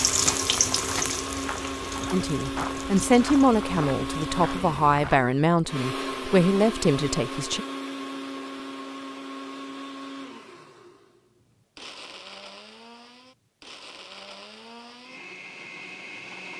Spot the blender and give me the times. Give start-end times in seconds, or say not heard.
0.0-16.5.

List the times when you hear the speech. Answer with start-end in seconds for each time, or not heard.
2.1-7.7.